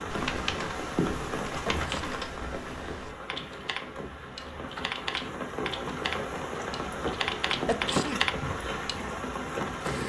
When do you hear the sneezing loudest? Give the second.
8 s.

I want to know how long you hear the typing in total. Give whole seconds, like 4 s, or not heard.
9 s.